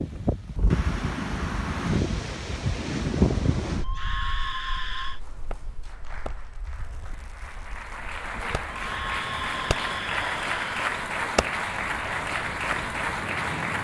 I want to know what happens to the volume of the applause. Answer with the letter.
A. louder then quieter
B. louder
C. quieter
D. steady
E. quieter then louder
B.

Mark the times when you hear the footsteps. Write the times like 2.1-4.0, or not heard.
not heard.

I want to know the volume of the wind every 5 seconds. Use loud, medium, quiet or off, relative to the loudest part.
loud, quiet, quiet.